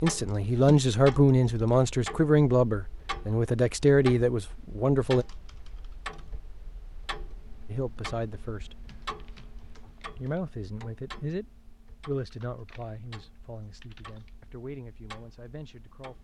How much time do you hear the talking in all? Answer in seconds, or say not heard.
12 s.